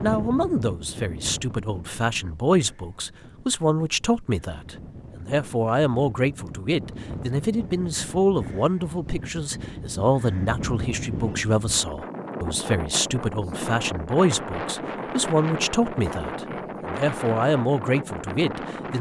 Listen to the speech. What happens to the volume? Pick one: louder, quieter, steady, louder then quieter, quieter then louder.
steady.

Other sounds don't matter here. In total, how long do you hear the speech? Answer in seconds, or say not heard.
19 s.